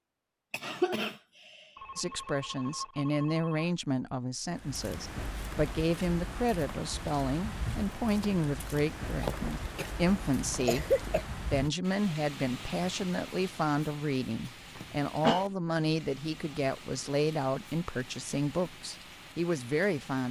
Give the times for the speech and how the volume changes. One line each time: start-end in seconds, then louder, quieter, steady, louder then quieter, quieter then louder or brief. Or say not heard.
1.9-20.2 steady.